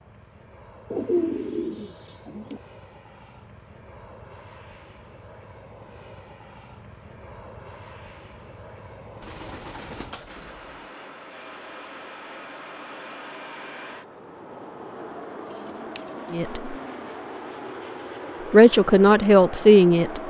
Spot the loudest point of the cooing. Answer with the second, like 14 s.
1 s.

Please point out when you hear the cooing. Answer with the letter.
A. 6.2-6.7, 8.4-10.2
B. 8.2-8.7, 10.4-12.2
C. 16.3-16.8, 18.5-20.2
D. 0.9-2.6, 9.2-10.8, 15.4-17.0
D.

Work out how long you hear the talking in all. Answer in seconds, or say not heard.
2 s.